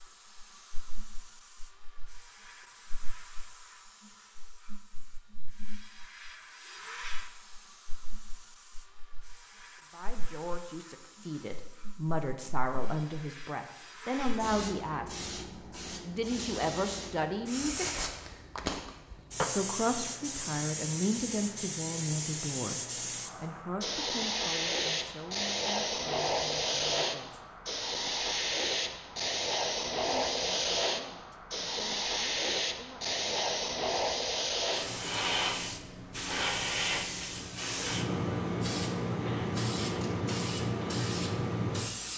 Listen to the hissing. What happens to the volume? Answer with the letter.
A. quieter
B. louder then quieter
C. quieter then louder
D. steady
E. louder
E.